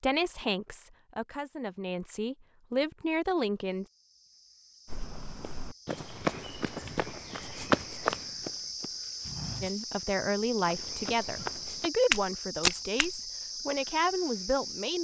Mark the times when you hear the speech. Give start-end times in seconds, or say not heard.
0.0-3.9, 9.6-15.0.